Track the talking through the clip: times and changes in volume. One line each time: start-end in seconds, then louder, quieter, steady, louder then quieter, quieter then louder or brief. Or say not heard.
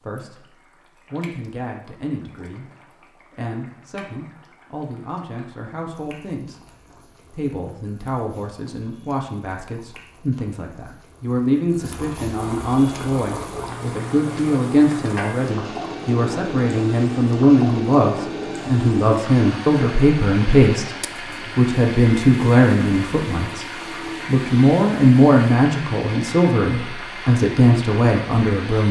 0.0-28.8 louder.